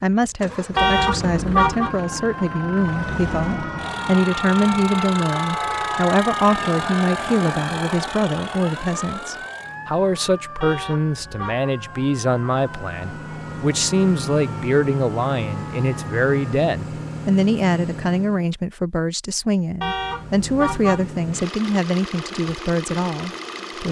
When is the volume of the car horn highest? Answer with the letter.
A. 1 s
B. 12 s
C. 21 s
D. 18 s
A.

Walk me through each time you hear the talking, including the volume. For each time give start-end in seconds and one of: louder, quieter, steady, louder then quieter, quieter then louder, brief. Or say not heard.
0.0-23.8 steady.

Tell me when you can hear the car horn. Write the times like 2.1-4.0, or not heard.
0.8-1.9, 10.6-11.7, 19.8-21.1.